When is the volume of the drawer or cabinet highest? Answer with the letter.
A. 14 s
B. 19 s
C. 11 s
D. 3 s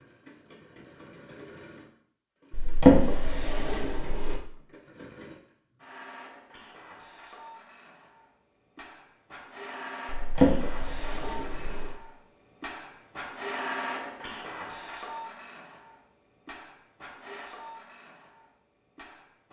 D.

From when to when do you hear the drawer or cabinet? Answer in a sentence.
The drawer or cabinet can be heard from 2.5 to 4.4 s and from 10.1 to 12.0 s.